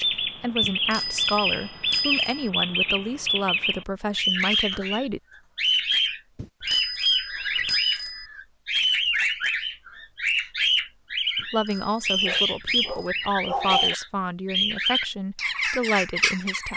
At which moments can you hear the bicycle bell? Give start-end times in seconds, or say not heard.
0.6-2.5, 6.3-8.2, 11.3-13.2.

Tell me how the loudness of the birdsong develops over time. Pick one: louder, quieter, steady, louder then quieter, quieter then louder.
steady.